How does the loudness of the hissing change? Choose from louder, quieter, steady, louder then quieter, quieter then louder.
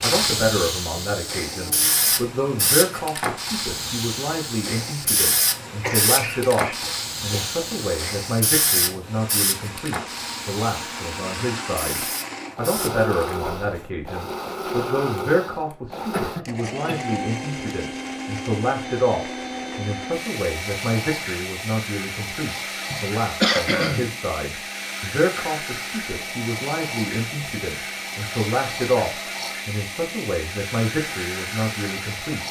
quieter.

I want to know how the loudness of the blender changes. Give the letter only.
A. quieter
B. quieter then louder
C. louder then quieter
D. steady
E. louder
E.